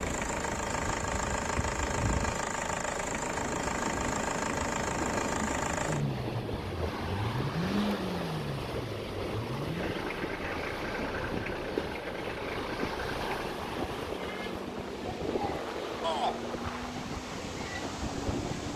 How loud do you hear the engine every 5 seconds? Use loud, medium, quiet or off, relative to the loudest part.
loud, loud, medium, medium.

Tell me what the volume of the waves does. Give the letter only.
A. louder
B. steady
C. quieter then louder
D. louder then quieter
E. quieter
B.